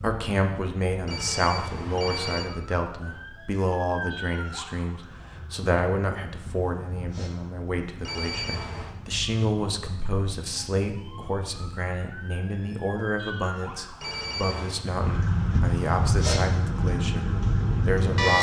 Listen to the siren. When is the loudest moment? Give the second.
18 s.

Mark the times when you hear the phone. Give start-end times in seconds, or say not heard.
1.1-2.5, 8.0-8.9, 14.0-14.8.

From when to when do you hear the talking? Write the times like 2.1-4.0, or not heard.
0.0-18.3.